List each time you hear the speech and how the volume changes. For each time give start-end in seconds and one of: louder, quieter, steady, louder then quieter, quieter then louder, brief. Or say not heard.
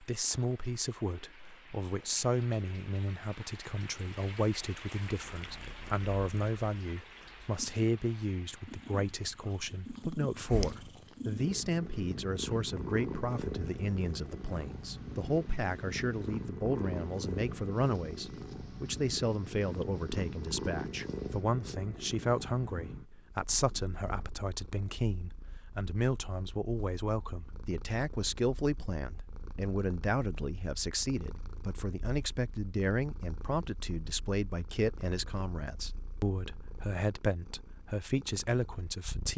0.0-39.3 steady.